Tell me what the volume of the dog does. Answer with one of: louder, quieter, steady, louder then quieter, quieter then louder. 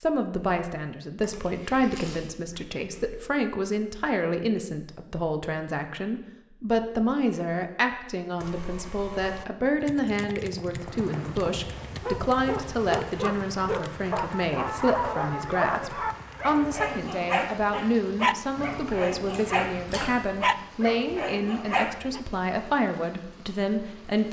steady.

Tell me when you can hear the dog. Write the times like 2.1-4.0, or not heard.
11.9-22.2.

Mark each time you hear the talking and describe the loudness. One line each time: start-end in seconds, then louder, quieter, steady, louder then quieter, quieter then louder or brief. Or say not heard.
0.0-24.2 steady.